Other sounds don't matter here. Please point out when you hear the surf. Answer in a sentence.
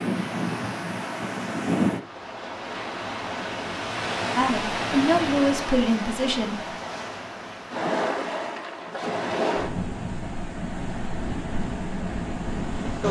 The surf can be heard from 0.0 to 13.0 s.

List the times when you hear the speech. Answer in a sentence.
The speech can be heard from 4.3 to 6.6 s.